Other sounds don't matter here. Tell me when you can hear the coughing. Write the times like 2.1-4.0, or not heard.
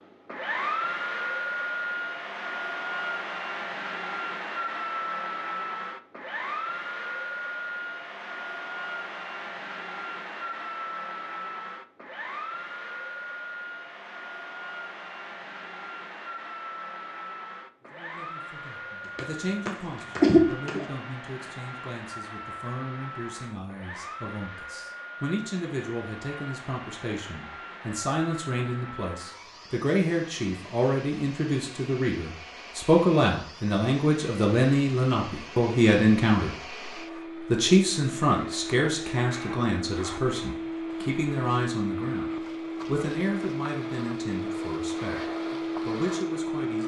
19.1-20.9.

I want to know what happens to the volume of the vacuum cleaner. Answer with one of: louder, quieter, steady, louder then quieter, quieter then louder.
quieter then louder.